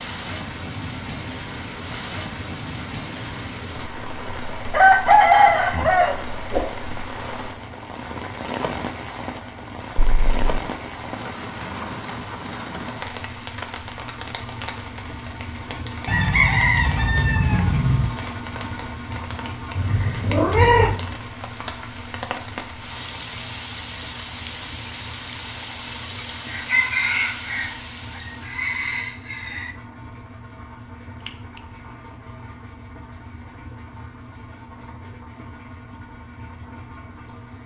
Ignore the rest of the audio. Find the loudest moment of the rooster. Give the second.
5 s.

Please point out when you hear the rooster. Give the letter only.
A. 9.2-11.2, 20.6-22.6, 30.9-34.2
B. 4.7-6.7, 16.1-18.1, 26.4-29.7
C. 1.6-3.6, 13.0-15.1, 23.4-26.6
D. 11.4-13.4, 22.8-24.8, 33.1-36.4
B.